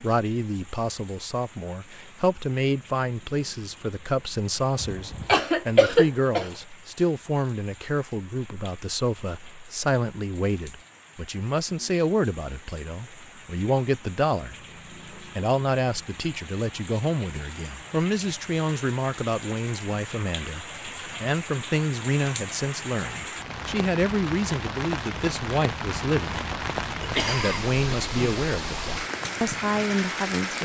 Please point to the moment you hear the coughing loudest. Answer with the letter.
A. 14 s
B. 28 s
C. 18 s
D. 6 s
D.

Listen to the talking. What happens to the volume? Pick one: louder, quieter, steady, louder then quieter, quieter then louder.
steady.